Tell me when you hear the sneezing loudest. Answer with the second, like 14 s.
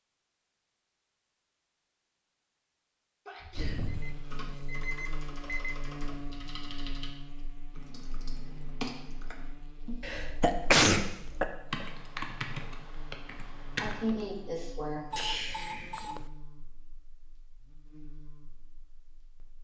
11 s.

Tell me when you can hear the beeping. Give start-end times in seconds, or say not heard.
3.9-5.8, 15.1-16.3.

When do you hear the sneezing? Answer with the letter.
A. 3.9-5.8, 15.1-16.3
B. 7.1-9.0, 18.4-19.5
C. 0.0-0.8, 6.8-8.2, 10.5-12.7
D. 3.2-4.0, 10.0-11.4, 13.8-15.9
D.